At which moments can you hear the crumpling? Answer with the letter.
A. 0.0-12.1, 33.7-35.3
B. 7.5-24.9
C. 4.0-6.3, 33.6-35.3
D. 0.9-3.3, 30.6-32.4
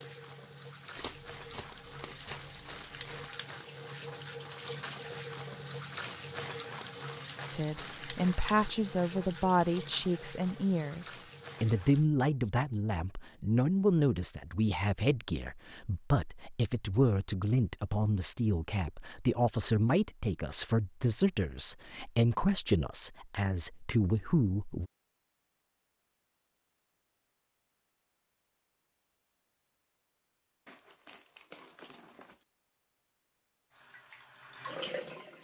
D.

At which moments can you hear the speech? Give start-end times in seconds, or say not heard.
7.5-24.9.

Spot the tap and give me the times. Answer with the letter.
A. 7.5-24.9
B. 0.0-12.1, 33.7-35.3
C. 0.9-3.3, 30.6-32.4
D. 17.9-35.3
B.